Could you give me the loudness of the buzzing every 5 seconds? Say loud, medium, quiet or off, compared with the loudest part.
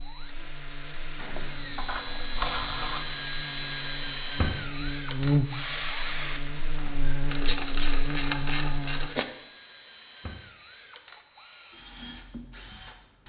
quiet, loud, off.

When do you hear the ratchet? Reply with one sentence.
You can hear the ratchet from 1.1 to 3.0 s and from 7.2 to 9.2 s.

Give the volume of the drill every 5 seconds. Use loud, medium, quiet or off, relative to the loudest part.
loud, medium, quiet.